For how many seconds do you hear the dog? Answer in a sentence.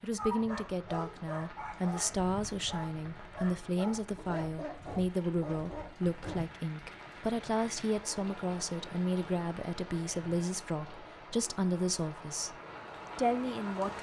You can hear the dog for 6 seconds altogether.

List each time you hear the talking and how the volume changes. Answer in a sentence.
The talking can be heard from 0.0 to 12.6 s, at a steady volume; and briefly from 13.2 to 13.9 s.